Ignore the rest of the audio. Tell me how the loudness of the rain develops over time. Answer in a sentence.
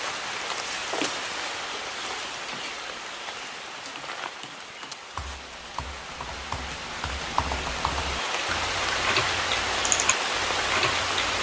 The loudness of the rain goes down, then up.